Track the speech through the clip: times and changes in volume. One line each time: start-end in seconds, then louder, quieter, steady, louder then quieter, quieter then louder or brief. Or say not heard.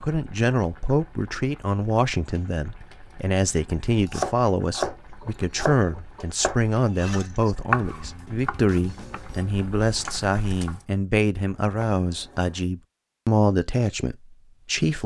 0.0-15.0 steady.